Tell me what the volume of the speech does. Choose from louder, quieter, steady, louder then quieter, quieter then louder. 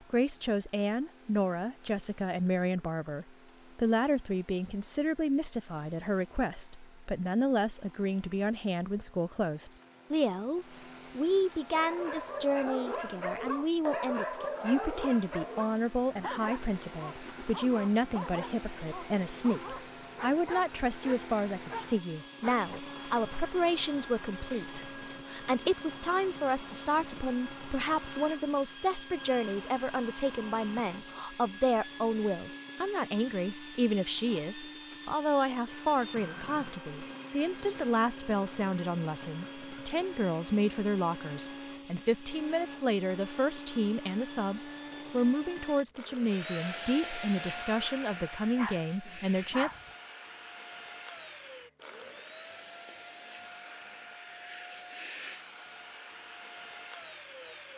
steady.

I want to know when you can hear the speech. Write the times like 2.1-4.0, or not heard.
0.1-49.7.